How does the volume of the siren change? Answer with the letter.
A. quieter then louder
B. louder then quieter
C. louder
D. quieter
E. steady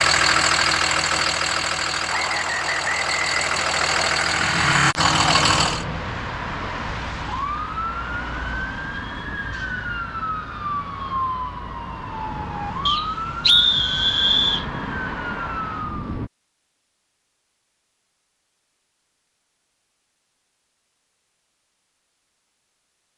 E.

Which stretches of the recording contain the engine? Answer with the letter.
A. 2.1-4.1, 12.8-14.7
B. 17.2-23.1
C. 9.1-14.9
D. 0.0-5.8
D.